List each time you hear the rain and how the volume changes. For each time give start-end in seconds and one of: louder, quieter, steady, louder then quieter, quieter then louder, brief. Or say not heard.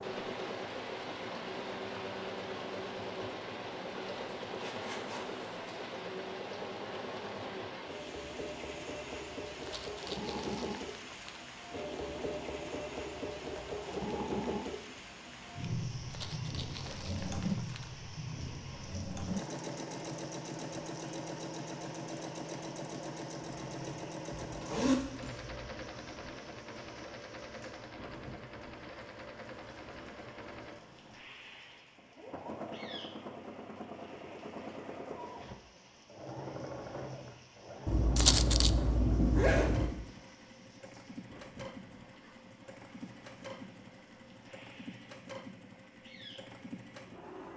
0.0-47.5 quieter.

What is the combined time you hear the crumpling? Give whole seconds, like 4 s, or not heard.
4 s.